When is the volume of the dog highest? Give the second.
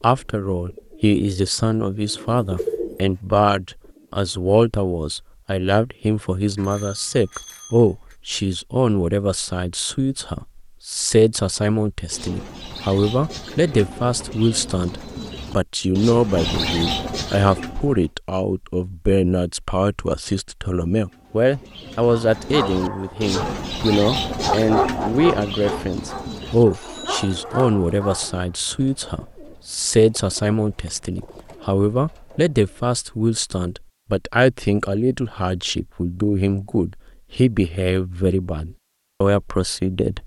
25 s.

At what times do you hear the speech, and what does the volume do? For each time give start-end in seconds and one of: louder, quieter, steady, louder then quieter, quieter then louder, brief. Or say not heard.
0.0-40.2 steady.